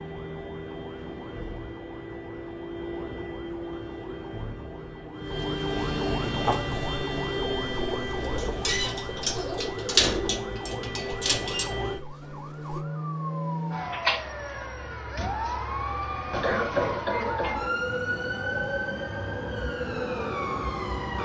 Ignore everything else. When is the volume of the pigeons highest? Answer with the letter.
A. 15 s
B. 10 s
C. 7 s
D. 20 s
B.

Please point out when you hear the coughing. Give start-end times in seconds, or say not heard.
16.3-17.7.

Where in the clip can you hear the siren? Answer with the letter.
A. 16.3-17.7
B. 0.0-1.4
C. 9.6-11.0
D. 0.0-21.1
D.